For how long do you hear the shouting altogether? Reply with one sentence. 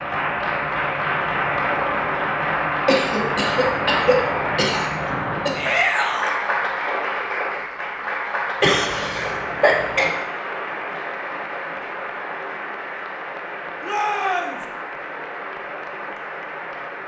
You can hear the shouting for 2 seconds altogether.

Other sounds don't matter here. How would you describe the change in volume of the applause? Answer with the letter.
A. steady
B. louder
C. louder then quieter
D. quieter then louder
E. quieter
E.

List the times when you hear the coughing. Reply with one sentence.
You can hear the coughing from 2.9 to 5.6 s and from 8.6 to 10.1 s.